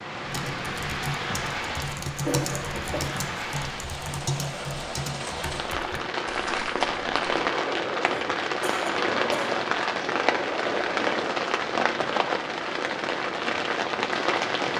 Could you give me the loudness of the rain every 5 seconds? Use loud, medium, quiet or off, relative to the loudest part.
medium, loud, loud.